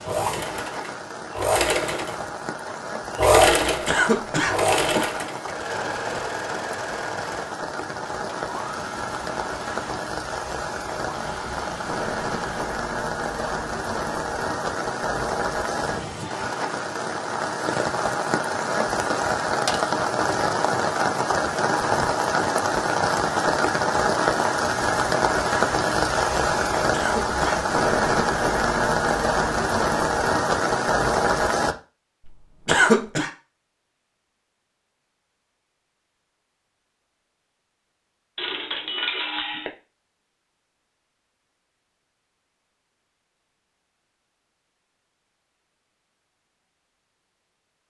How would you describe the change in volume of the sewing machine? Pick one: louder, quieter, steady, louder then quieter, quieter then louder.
louder then quieter.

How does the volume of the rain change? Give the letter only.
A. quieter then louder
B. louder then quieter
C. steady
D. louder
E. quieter
D.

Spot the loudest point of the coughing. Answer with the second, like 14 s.
33 s.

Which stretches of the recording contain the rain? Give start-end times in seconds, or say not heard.
0.0-31.8.